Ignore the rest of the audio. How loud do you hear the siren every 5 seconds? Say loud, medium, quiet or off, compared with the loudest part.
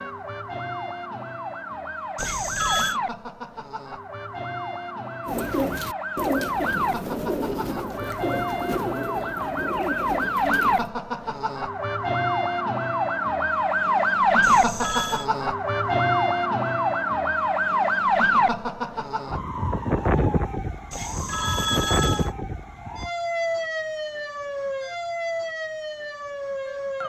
medium, medium, loud, loud, medium, medium.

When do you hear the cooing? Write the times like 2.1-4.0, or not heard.
5.2-10.9.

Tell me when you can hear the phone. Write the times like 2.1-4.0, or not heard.
2.1-3.0, 14.4-15.3, 20.9-22.3.